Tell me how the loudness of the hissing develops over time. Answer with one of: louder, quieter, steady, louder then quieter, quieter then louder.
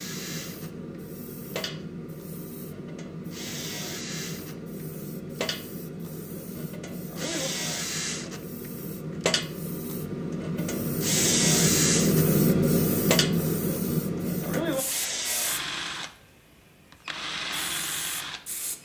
louder then quieter.